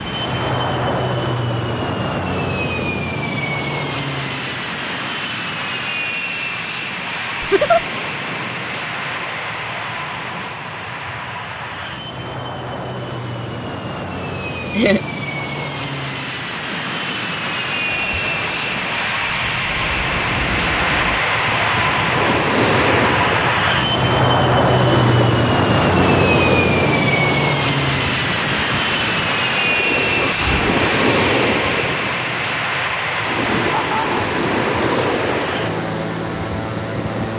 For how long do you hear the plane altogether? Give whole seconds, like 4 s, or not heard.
37 s.